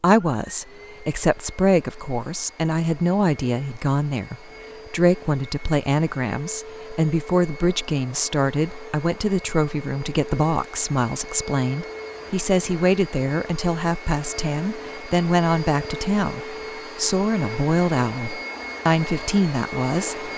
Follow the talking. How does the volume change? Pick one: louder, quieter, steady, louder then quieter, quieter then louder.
steady.